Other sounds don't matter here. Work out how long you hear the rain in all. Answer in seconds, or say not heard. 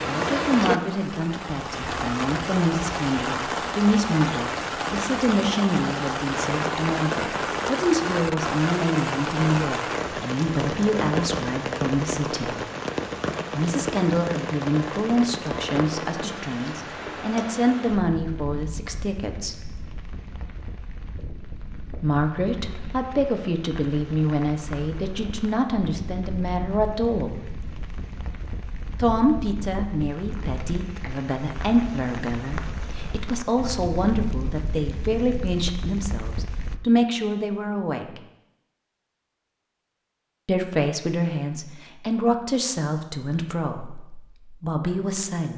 37 s.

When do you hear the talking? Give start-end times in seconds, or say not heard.
0.0-12.6, 13.6-19.6, 21.9-27.5, 28.9-38.2, 40.5-45.5.